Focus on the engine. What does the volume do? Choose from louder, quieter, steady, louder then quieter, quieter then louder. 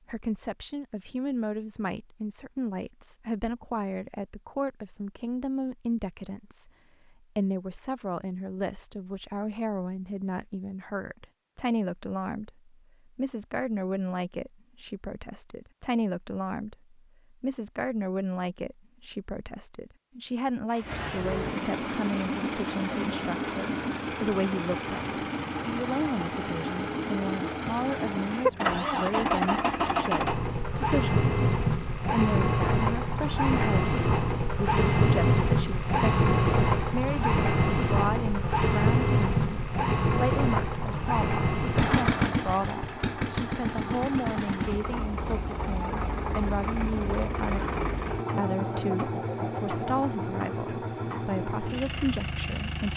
louder then quieter.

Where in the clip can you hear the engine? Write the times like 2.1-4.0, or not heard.
20.7-52.9.